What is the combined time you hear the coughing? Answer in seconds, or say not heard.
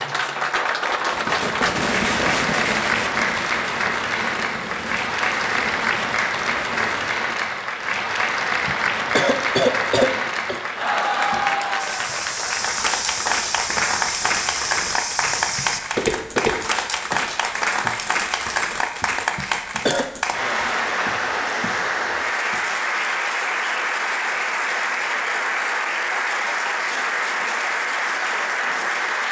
3 s.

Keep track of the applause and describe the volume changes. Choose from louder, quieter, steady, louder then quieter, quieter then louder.
steady.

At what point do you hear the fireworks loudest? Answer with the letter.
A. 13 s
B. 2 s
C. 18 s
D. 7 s
B.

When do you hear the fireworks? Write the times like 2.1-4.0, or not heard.
1.0-7.2.